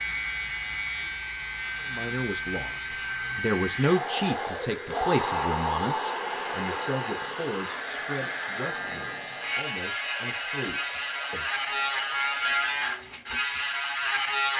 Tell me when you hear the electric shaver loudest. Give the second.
12 s.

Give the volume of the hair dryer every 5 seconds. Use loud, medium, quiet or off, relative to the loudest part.
loud, loud, quiet.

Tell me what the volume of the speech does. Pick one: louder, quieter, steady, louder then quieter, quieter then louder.
quieter.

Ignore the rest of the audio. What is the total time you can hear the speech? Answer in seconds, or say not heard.
10 s.